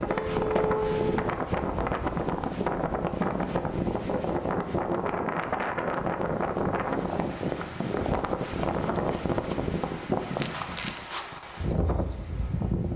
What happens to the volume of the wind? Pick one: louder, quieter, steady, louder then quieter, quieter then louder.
steady.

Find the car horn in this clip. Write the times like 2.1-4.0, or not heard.
0.1-1.2.